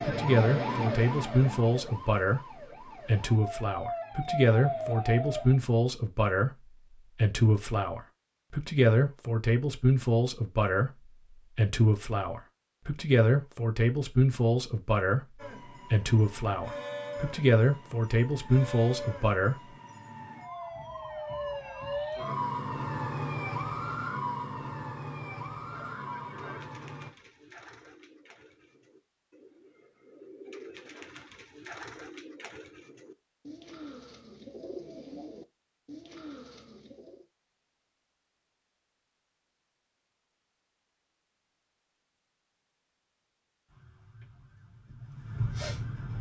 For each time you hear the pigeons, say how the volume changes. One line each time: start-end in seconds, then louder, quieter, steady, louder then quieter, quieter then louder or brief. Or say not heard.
26.1-37.2 louder.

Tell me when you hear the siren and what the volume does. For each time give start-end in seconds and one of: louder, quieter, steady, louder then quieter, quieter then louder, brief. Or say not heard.
0.0-5.5 quieter then louder
15.3-27.1 louder then quieter
43.6-46.1 brief.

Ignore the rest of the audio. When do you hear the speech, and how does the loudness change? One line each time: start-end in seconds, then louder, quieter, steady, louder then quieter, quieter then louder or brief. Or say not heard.
0.0-19.8 steady.